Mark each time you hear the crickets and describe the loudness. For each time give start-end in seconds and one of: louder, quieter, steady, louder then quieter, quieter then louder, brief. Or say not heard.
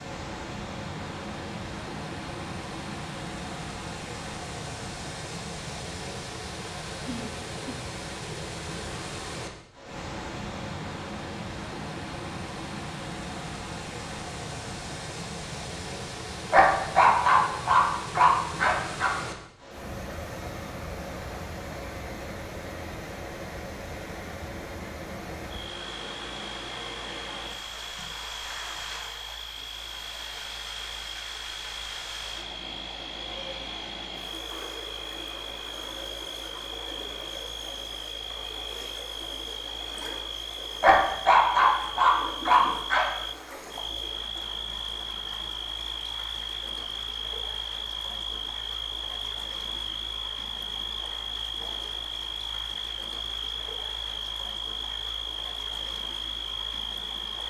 25.5-57.4 louder.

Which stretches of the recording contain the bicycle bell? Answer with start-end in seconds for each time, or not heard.
not heard.